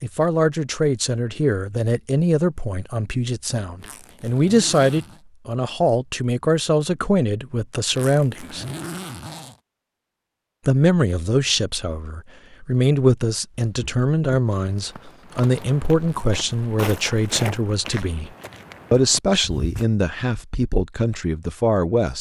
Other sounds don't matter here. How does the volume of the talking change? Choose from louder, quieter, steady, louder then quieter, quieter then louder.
steady.